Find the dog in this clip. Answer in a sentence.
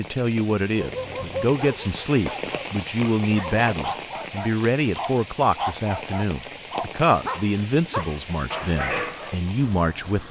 The dog can be heard from 0.8 to 9.3 s.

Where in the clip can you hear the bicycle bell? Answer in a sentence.
You can hear the bicycle bell from 2.3 to 3.0 s and from 6.8 to 7.5 s.